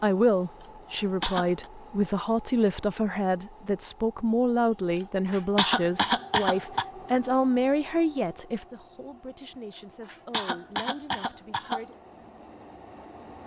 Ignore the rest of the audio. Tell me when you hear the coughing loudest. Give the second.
6 s.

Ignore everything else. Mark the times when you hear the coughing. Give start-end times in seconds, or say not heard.
0.3-1.7, 5.0-6.8, 9.7-11.8.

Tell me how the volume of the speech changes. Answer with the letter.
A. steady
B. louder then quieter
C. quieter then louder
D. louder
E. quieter
E.